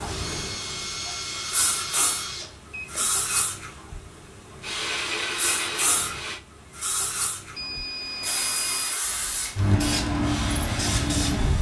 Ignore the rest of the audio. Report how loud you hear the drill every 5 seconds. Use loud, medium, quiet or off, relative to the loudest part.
loud, loud, medium.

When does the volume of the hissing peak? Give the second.
10 s.